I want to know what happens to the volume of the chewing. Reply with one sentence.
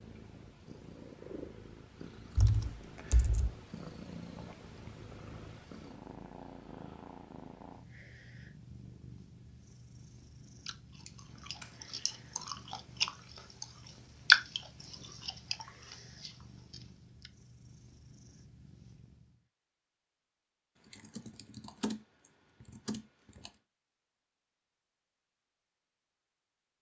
The volume of the chewing goes up, then down.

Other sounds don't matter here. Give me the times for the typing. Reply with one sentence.
The typing can be heard from 2.4 to 3.5 s, from 11.6 to 12.7 s and from 20.9 to 23.5 s.